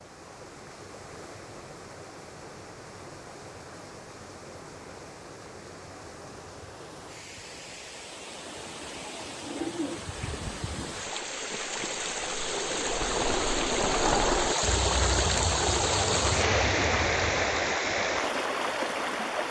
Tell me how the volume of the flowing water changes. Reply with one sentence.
The loudness of the flowing water goes up.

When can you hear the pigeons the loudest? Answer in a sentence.
The volume of the pigeons peaks at 14 seconds.